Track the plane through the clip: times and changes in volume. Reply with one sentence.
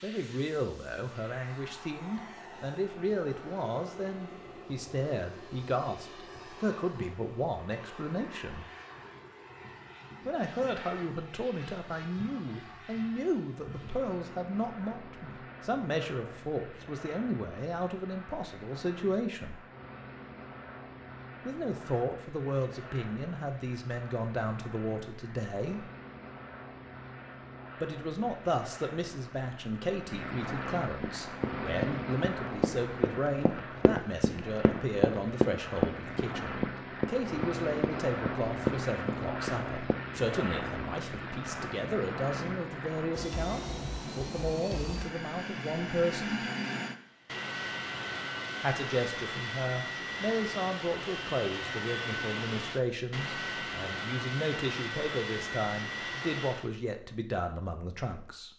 The plane can be heard from 0.0 to 56.7 s, getting louder.